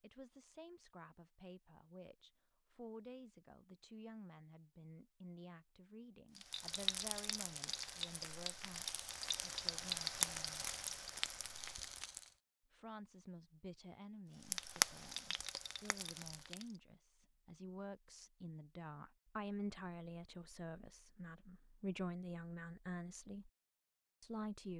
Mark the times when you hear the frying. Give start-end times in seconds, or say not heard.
6.3-12.3, 14.4-16.8.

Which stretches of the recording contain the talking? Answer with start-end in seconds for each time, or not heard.
0.0-10.7, 12.7-23.5, 24.2-24.7.